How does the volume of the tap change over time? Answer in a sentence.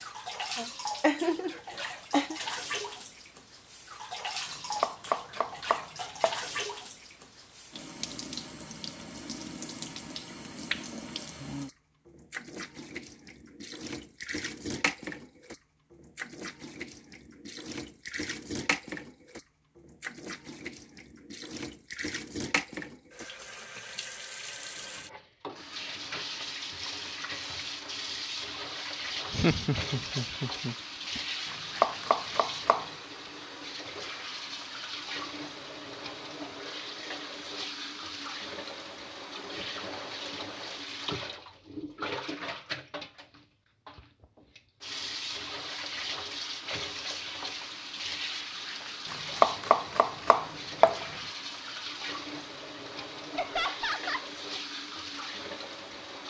The volume of the tap stays about the same.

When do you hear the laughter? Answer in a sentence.
The laughter can be heard from 0.6 to 2.4 s, from 29.3 to 31.2 s and from 53.4 to 54.3 s.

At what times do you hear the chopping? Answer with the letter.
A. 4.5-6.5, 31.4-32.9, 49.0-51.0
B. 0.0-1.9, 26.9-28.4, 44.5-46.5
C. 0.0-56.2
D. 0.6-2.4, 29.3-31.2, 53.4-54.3
A.